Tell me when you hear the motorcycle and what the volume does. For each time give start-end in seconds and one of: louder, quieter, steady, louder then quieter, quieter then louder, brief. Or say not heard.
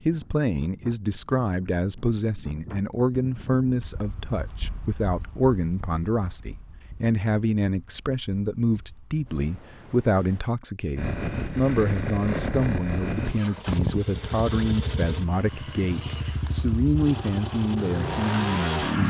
10.9-19.0 steady.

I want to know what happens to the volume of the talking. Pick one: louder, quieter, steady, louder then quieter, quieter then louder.
steady.